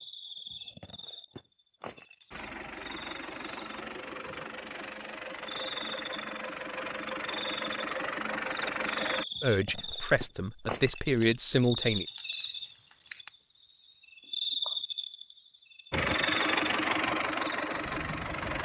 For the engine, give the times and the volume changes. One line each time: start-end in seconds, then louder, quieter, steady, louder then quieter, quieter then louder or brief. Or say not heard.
2.3-9.2 louder
15.9-18.6 brief.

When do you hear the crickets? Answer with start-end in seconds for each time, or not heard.
0.0-18.6.